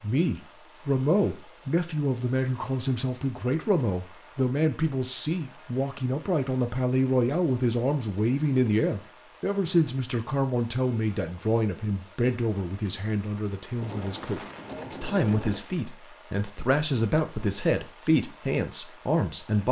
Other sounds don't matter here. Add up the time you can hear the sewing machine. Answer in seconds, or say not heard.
2 s.